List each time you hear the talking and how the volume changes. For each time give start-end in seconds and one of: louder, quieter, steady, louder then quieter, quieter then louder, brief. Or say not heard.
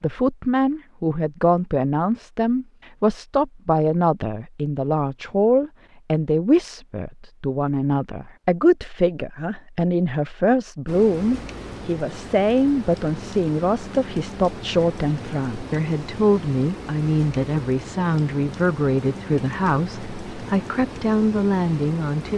0.0-22.3 steady.